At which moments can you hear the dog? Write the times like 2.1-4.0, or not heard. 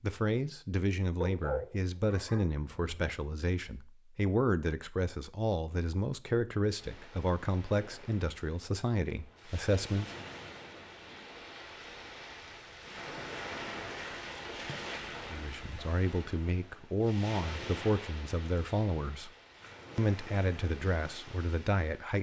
1.2-3.1.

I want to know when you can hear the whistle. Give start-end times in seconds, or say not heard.
not heard.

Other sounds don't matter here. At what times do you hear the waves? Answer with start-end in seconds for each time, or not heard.
6.7-22.1.